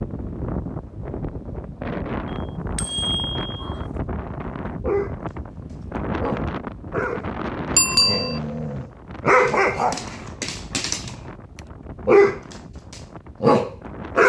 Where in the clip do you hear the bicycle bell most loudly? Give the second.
8 s.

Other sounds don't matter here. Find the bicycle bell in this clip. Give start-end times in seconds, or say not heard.
2.2-3.8, 7.8-8.4.